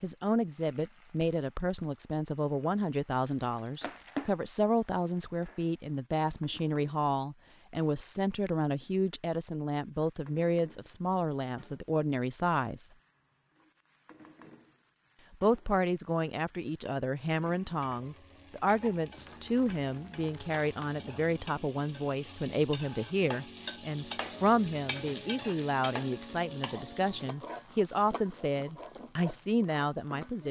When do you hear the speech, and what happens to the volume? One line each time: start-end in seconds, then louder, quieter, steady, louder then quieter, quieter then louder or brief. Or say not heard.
0.0-12.9 steady
15.4-30.4 steady.